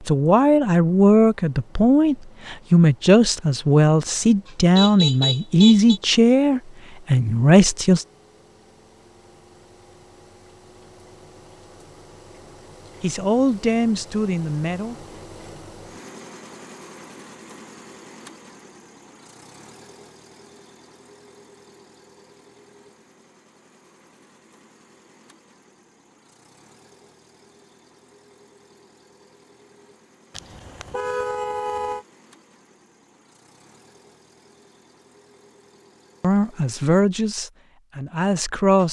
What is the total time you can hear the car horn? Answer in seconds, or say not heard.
3 s.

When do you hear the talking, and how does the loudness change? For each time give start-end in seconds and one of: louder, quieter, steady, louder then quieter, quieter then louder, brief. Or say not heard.
0.1-8.1 steady
13.0-14.9 brief
36.2-38.8 brief.